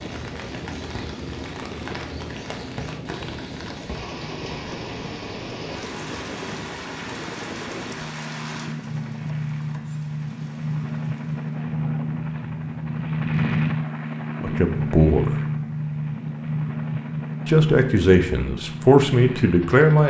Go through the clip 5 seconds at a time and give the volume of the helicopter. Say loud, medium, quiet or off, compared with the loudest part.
medium, medium, loud, loud.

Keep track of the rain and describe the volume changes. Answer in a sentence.
The loudness of the rain goes down.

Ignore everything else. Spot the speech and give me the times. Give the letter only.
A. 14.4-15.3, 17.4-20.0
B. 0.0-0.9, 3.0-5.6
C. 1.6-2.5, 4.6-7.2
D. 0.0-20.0
A.